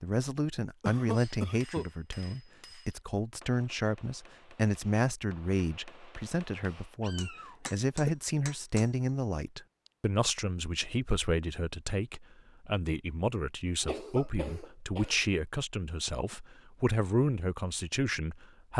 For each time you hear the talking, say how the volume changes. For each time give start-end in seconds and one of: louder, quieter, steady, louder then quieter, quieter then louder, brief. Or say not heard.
0.0-18.7 steady.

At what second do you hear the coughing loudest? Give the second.
1 s.